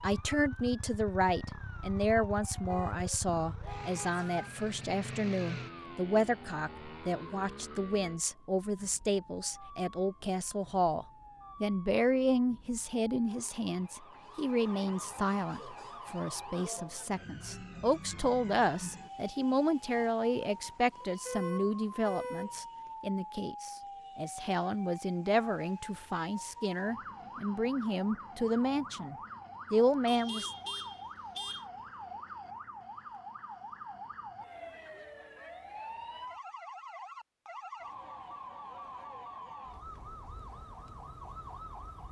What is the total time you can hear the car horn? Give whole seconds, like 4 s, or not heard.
5 s.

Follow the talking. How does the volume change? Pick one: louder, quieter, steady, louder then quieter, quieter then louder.
steady.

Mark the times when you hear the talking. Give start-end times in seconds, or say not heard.
0.0-30.5.